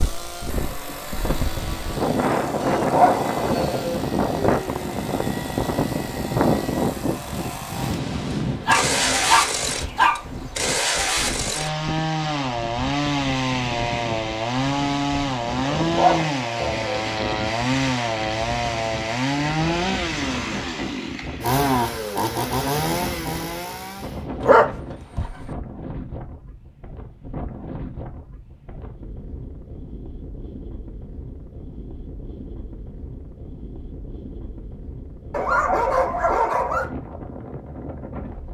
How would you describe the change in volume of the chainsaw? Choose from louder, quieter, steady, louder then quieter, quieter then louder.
louder.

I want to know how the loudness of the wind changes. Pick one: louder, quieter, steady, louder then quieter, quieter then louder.
quieter.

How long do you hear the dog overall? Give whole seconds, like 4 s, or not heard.
7 s.